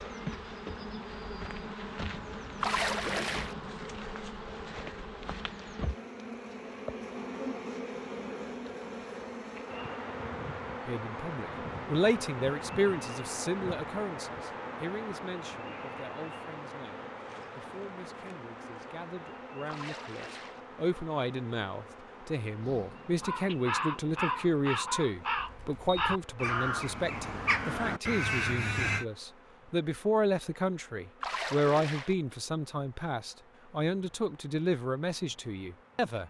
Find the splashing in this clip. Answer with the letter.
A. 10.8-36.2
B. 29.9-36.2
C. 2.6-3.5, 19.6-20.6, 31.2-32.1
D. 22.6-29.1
C.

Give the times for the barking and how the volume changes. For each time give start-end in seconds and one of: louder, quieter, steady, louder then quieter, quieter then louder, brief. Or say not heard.
not heard.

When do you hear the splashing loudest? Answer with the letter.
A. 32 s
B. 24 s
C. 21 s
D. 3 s
D.